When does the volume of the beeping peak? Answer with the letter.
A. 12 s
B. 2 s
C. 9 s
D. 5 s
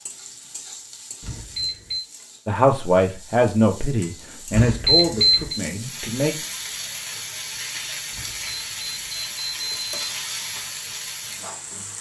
D.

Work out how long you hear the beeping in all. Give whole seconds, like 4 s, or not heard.
4 s.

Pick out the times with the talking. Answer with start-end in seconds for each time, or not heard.
2.5-6.3.